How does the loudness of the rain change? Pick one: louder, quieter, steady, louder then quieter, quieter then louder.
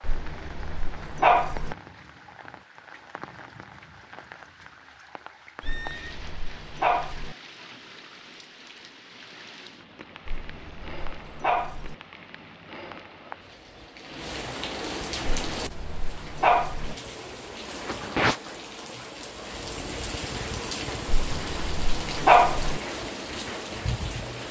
louder.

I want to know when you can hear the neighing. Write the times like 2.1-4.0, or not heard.
5.6-6.2.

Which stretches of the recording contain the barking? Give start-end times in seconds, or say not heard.
0.0-1.8, 5.6-7.3, 10.2-11.9, 15.4-16.9, 21.1-22.8.